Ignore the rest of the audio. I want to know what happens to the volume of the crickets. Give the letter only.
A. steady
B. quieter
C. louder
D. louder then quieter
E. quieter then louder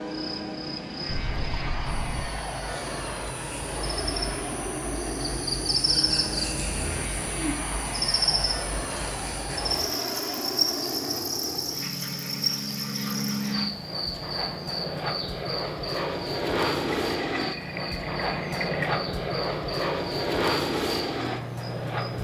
D.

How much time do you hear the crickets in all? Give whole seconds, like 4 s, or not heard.
22 s.